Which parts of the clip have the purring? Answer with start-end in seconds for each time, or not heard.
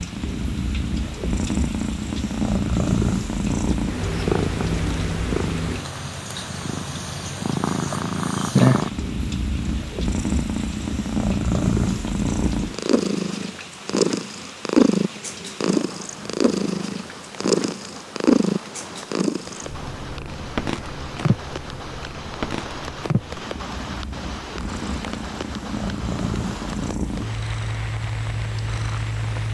0.0-29.4.